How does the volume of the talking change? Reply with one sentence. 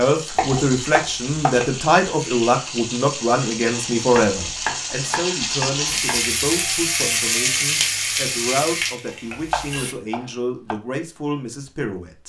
The volume of the talking goes down.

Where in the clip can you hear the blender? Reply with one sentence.
The blender can't be heard in this clip.